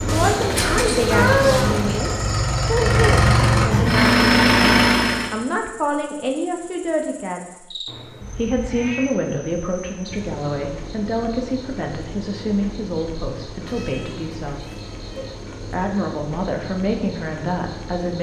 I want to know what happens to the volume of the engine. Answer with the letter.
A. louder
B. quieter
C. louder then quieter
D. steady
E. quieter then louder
A.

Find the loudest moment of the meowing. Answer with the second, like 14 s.
1 s.